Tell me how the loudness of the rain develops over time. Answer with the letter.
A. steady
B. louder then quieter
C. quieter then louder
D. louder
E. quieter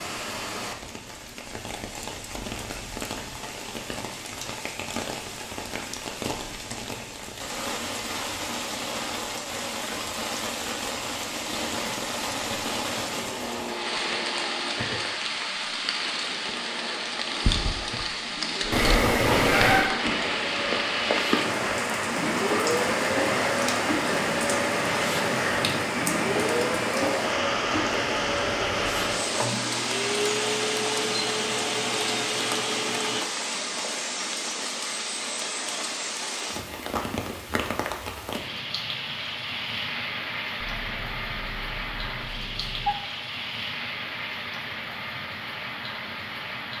B.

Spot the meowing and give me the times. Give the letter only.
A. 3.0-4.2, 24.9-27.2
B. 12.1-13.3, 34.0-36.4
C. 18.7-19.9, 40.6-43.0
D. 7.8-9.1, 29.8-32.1
C.